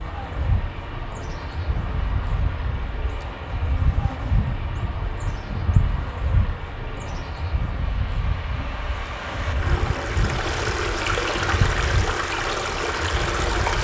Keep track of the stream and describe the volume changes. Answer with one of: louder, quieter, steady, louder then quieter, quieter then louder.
louder.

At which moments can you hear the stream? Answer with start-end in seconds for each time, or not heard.
0.0-13.8.